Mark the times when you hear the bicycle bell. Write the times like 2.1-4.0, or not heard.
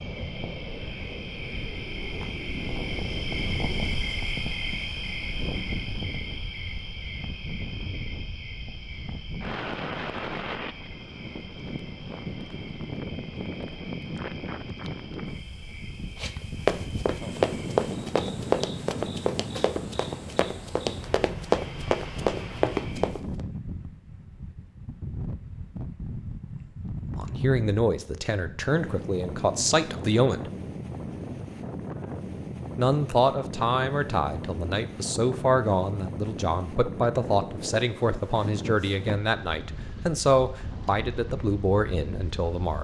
not heard.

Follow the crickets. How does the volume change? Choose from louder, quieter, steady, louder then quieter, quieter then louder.
quieter.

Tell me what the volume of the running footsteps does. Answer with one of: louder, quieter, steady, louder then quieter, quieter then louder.
quieter then louder.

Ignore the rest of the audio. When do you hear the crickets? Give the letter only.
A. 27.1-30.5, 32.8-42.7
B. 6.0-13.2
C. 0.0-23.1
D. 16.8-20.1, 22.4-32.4
C.